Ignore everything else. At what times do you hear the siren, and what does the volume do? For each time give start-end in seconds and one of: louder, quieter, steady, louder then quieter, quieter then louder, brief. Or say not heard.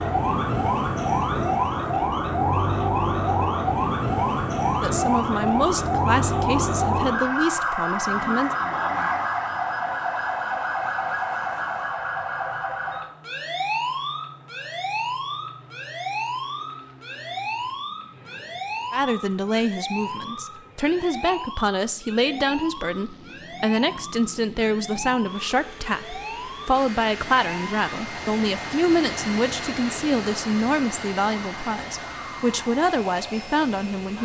0.0-34.1 quieter.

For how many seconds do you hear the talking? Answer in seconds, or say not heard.
19 s.